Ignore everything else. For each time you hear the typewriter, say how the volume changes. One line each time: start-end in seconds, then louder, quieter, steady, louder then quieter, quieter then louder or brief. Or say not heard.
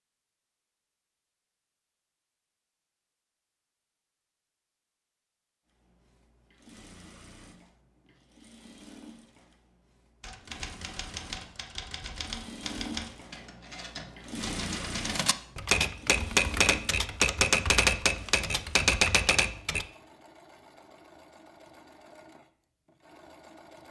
10.2-19.9 louder.